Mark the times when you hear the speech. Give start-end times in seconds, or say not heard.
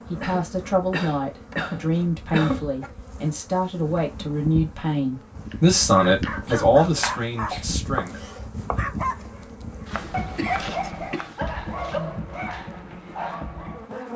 0.1-8.2.